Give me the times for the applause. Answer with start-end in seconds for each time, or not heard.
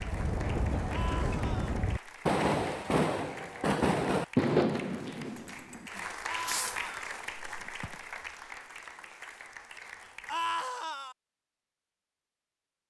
0.0-10.4.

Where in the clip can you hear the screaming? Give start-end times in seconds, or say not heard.
0.9-1.8, 6.2-7.1, 10.2-11.2.